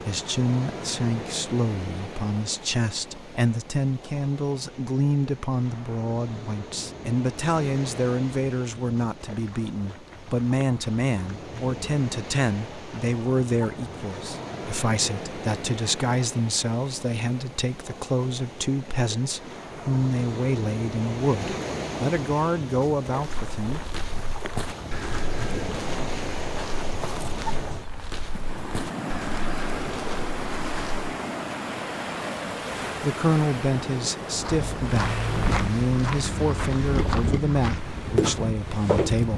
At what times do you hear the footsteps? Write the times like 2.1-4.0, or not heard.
23.2-31.0, 34.4-39.2.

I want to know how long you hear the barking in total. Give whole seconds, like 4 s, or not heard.
not heard.